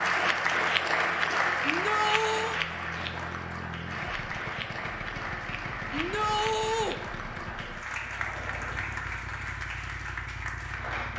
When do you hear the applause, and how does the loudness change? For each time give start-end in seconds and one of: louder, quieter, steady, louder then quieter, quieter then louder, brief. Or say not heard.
0.0-11.1 quieter.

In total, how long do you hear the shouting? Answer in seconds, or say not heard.
2 s.